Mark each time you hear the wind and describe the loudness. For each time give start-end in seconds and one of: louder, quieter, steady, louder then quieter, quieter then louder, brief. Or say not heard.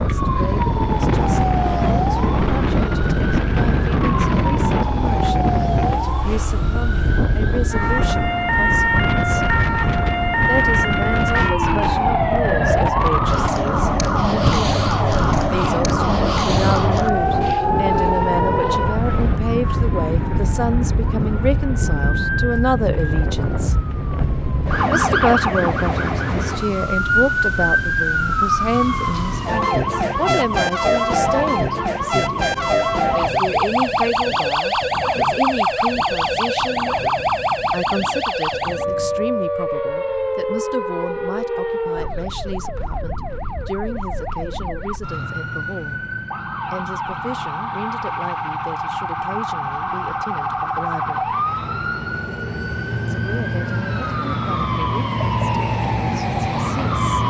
0.0-39.3 quieter.